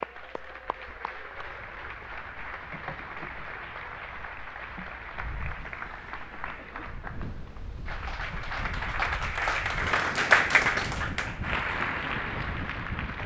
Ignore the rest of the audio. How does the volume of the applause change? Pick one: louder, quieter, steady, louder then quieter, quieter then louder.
louder.